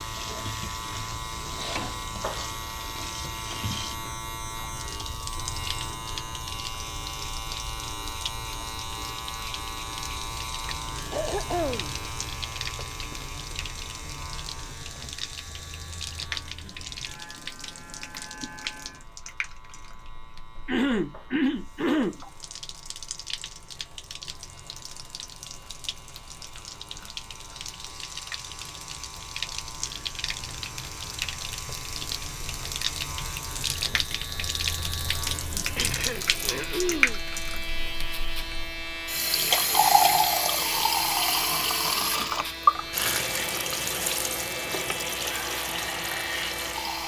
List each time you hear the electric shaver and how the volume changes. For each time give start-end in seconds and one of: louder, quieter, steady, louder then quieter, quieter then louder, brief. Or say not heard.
0.0-47.0 quieter then louder.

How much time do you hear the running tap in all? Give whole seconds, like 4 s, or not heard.
47 s.